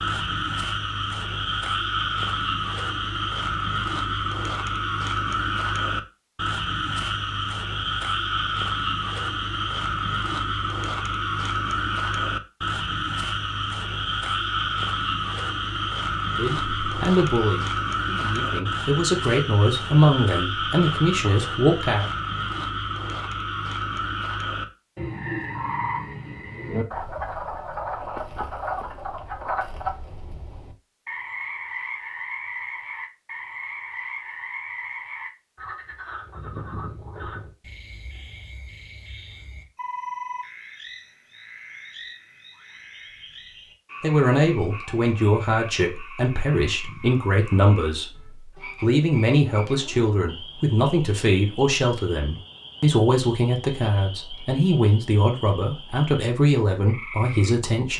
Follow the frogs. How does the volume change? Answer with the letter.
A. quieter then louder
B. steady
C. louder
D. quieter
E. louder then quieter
D.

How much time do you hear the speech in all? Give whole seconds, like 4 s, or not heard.
20 s.